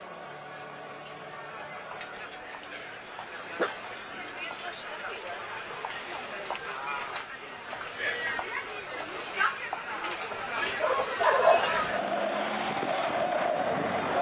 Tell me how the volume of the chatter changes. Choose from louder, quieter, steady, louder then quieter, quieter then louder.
louder.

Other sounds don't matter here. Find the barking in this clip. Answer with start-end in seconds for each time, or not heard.
3.5-4.5, 10.8-12.4.